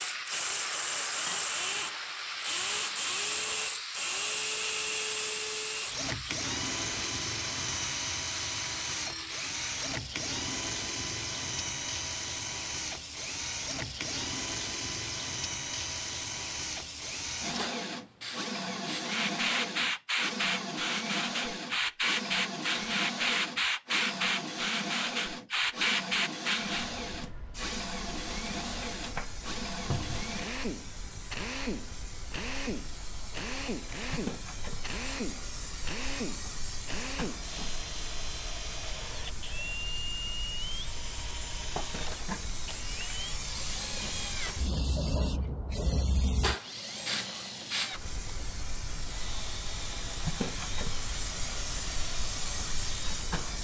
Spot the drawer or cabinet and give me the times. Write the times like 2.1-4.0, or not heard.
29.9-30.3.